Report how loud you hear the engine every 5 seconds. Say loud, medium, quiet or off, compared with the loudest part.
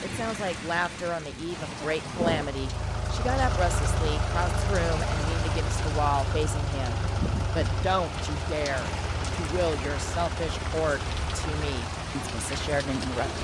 loud, loud, medium.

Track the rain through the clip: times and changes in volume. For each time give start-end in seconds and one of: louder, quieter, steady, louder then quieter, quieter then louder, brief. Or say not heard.
0.0-13.3 steady.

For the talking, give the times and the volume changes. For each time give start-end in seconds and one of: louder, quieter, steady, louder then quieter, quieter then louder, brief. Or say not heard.
0.0-13.3 steady.